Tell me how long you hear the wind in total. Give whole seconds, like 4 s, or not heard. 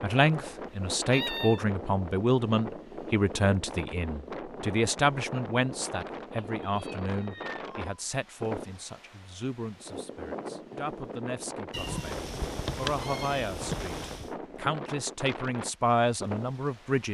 17 s.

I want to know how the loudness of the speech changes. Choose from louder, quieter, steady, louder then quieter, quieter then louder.
quieter then louder.